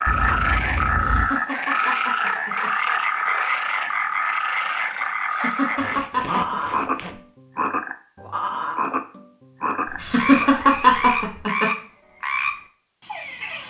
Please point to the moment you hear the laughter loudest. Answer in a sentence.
The volume of the laughter peaks at 11 seconds.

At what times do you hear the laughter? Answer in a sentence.
You can hear the laughter from 1.0 to 2.7 s, from 5.3 to 6.6 s and from 10.0 to 11.7 s.